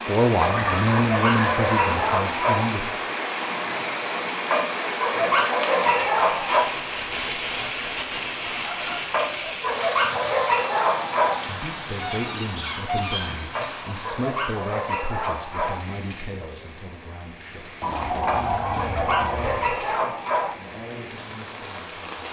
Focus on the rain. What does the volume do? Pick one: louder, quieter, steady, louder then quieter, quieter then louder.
quieter.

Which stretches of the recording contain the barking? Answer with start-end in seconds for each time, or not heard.
0.4-2.8, 4.5-6.8, 9.1-11.5, 13.6-15.9, 18.2-20.6.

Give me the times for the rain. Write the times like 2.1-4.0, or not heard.
0.0-22.2.